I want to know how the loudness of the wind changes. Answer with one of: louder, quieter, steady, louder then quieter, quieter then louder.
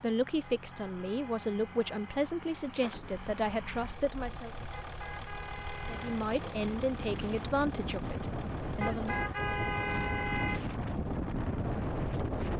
louder.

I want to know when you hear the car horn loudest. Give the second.
10 s.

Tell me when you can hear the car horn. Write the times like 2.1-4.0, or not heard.
0.6-2.2, 4.7-6.2, 8.8-10.7.